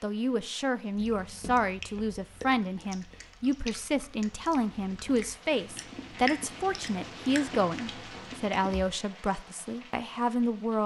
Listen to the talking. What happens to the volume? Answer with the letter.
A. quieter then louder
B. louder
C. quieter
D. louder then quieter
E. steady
E.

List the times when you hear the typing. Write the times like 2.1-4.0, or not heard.
not heard.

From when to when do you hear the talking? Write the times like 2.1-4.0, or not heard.
0.0-10.8.